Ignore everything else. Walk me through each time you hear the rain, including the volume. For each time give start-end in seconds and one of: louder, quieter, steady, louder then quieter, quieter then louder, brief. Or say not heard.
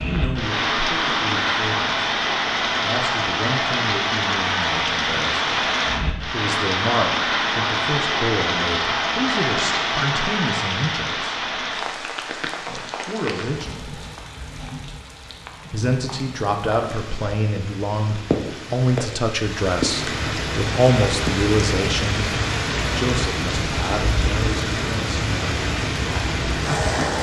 0.0-27.1 quieter then louder.